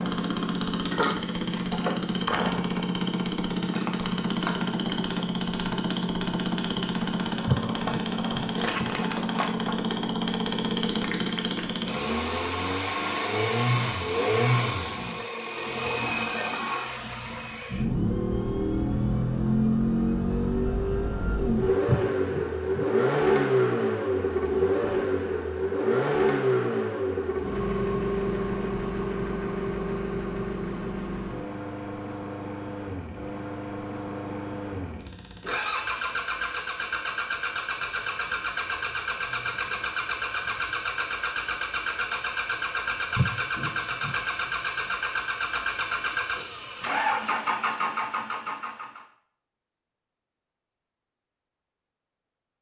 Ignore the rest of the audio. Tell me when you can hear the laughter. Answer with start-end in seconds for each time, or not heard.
7.5-9.1, 21.9-22.9, 43.1-44.1.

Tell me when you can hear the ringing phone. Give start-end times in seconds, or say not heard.
not heard.